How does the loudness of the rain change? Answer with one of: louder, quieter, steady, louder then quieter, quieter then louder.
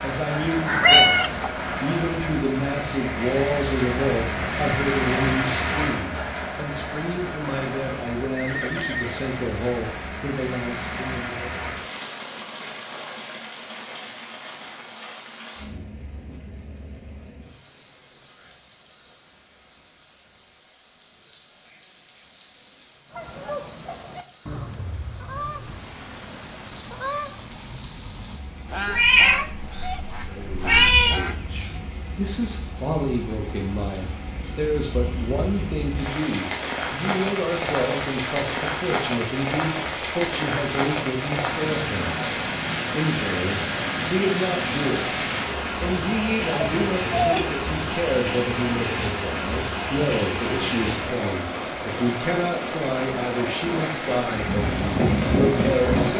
quieter then louder.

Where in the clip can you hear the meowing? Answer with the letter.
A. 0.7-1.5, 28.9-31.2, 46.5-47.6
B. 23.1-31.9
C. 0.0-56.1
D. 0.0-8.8
A.